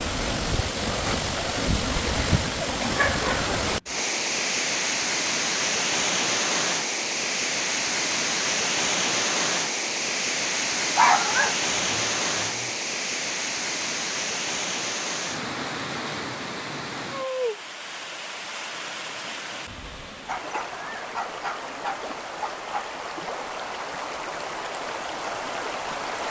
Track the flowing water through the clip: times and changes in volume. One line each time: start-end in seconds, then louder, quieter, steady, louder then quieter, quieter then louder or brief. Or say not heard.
0.0-26.2 quieter.